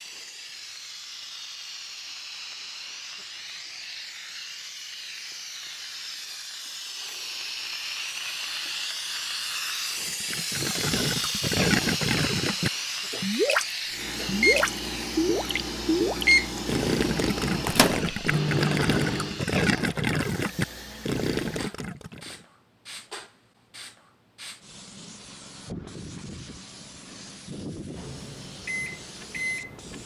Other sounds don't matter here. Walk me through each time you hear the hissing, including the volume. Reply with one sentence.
The hissing can be heard from 0.0 to 30.0 s, getting louder then quieter.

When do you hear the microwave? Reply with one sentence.
You can hear the microwave from 13.9 to 19.4 s and from 27.9 to 30.0 s.